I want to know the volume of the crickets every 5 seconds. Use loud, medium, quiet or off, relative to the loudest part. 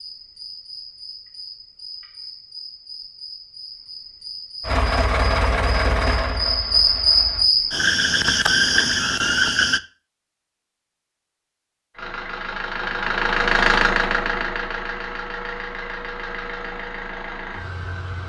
quiet, loud, off, off.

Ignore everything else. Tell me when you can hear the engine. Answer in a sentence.
You can hear the engine from 4.6 to 7.5 s and from 11.9 to 18.2 s.